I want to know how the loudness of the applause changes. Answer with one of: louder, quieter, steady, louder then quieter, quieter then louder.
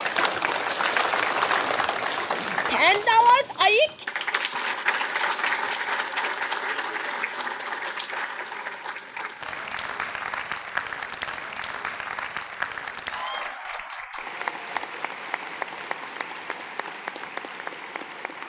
quieter.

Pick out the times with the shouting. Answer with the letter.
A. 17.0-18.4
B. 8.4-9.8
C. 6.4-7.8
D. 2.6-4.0
D.